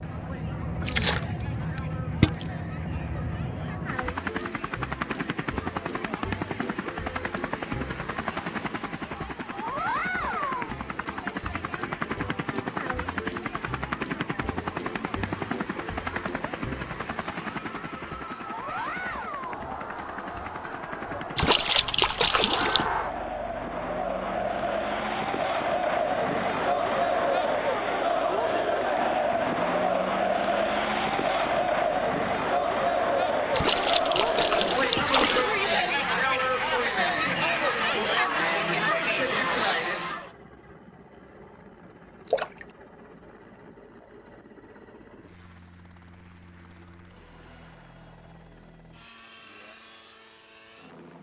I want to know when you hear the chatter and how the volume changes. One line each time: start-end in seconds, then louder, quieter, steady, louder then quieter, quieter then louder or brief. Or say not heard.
0.0-40.3 louder.